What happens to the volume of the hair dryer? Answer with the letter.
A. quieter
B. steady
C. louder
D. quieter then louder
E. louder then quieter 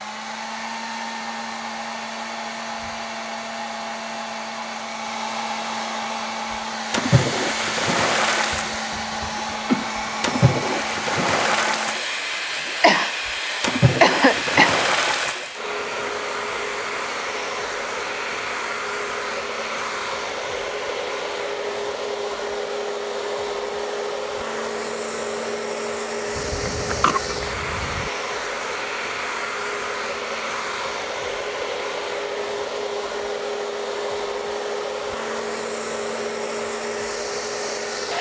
B.